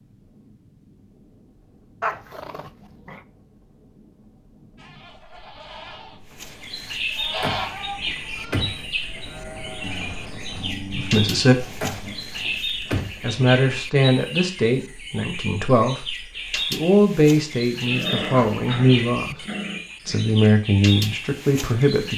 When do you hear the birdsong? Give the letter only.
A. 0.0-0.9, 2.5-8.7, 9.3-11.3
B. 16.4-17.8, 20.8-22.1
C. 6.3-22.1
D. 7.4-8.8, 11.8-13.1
C.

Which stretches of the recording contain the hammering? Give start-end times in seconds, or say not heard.
not heard.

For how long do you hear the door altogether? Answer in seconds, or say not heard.
3 s.